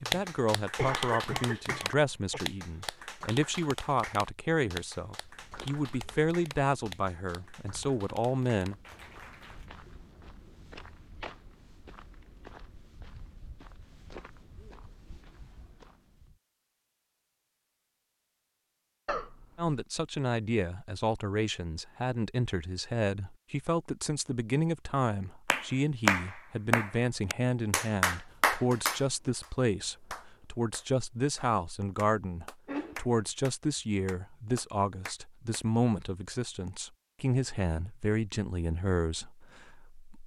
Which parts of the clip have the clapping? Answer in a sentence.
The clapping can be heard from 0.0 to 9.7 s and from 25.4 to 35.6 s.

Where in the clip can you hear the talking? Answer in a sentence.
The talking can be heard from 0.0 to 8.8 s and from 19.6 to 40.2 s.